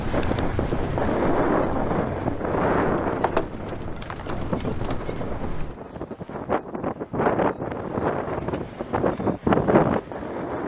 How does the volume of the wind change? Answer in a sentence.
The loudness of the wind goes down, then up.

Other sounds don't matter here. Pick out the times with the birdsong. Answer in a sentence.
The birdsong can be heard from 0.0 to 5.8 s.